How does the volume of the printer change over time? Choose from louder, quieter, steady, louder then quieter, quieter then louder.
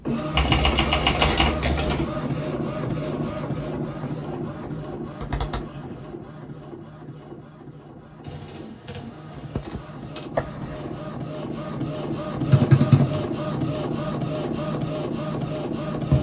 quieter then louder.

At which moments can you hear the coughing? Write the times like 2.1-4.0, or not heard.
1.1-1.9, 10.3-10.9.